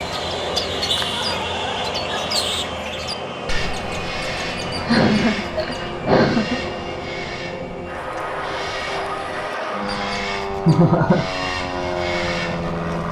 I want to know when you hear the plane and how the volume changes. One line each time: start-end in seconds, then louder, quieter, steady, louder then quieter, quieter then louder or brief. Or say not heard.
0.0-13.0 steady.